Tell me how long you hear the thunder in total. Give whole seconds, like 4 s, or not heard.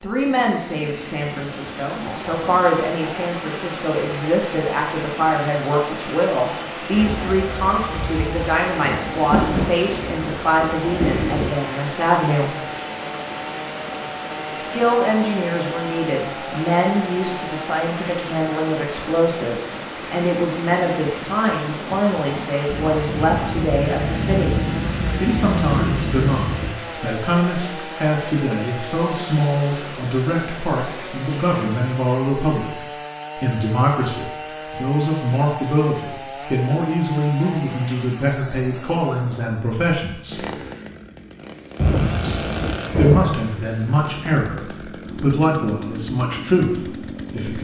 10 s.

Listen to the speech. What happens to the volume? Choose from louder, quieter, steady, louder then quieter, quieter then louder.
steady.